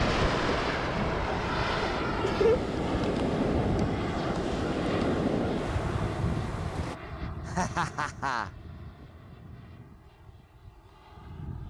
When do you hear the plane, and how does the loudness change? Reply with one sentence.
The plane can be heard from 0.0 to 11.6 s, getting quieter.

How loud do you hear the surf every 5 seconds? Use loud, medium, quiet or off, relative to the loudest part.
loud, loud, off.